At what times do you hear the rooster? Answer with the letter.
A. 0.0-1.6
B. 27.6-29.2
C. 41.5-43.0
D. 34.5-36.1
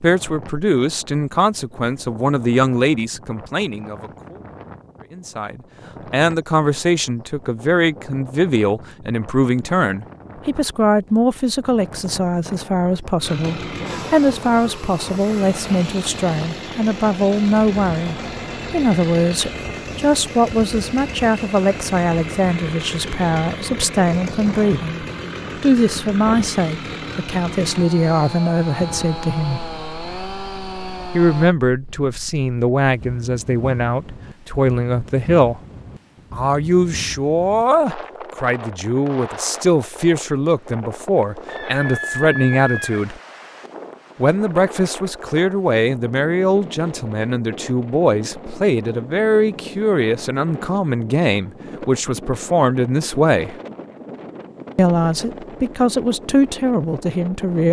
C.